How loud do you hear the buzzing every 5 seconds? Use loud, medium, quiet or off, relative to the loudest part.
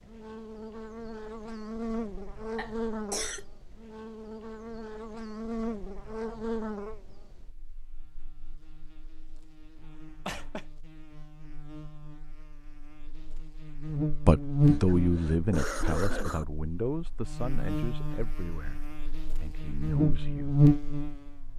quiet, quiet, medium, quiet, loud.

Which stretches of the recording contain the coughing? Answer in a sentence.
You can hear the coughing from 2.5 to 3.5 s, from 9.8 to 10.7 s and from 14.6 to 16.4 s.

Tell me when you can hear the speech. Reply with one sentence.
The speech can be heard from 14.2 to 20.6 s.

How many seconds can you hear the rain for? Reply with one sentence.
The rain can't be heard in this clip.